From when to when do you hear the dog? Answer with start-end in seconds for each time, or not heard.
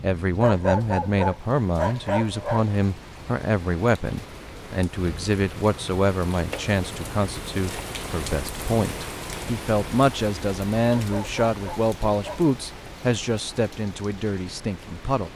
0.4-2.8, 10.9-12.4.